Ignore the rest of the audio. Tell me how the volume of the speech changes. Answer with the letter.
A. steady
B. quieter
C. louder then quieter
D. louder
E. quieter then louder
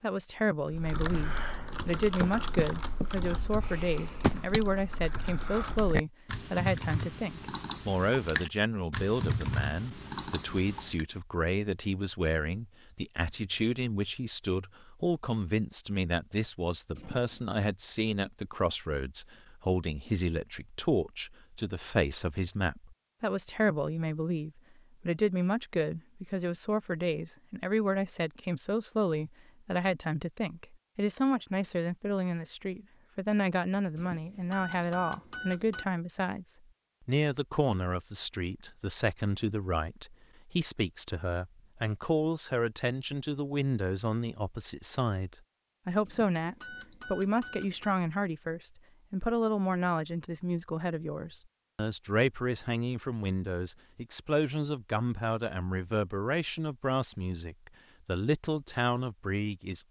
A.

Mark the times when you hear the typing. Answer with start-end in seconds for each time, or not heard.
0.7-11.1.